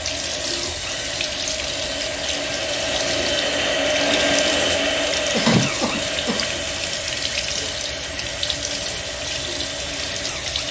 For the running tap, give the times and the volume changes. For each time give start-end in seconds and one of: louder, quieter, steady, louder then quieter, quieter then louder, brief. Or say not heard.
0.0-10.6 steady.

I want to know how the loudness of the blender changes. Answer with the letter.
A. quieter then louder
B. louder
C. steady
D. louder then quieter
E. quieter
D.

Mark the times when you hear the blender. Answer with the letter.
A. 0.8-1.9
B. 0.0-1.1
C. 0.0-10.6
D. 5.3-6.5
C.